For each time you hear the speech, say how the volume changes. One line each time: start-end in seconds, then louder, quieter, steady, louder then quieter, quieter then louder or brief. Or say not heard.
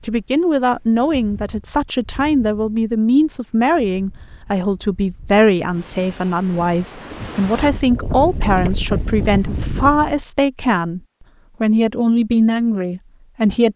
0.0-11.0 steady
11.6-13.7 brief.